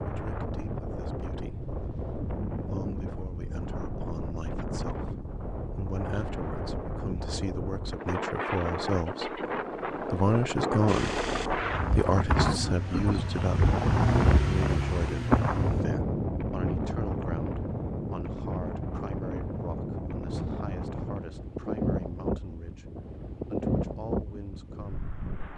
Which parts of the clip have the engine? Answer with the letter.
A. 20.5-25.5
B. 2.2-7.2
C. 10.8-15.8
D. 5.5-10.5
C.